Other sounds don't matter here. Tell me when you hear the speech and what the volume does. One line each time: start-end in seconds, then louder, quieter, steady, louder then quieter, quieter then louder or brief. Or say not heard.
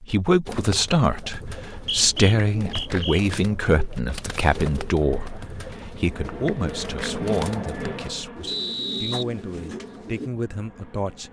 0.0-11.2 quieter.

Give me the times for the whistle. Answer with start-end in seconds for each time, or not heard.
1.7-3.2, 8.4-9.2.